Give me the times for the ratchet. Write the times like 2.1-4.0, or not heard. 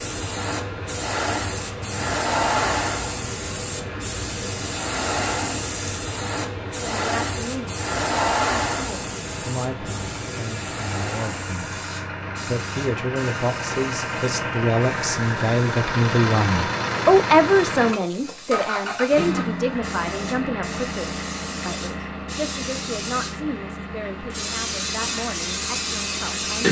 not heard.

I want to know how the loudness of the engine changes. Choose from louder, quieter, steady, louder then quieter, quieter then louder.
louder then quieter.